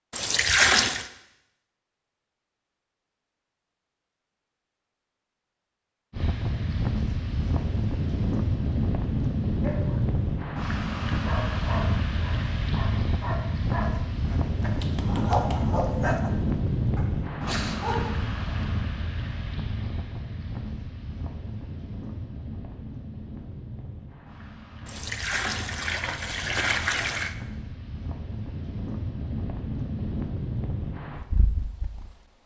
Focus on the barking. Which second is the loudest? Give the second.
15 s.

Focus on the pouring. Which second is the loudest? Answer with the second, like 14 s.
1 s.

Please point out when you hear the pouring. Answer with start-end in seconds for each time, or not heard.
0.1-1.1, 24.9-27.4.